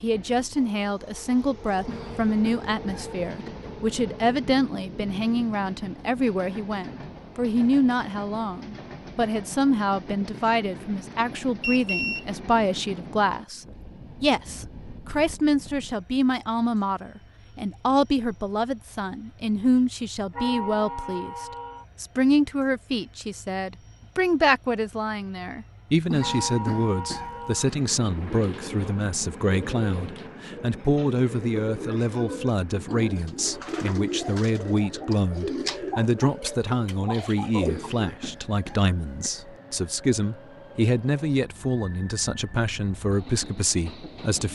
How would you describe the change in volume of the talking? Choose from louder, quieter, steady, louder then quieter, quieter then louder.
steady.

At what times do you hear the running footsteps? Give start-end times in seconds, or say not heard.
not heard.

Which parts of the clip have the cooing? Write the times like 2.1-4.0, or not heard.
28.1-38.1.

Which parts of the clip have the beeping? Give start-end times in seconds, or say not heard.
11.6-12.2.